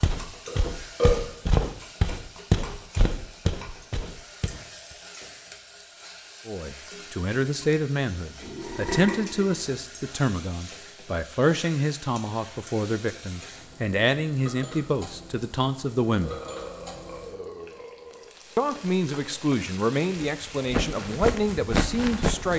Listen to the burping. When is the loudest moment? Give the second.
1 s.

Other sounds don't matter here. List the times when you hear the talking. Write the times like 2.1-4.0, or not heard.
6.5-16.4, 18.6-22.5.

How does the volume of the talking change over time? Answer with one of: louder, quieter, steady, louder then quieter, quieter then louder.
steady.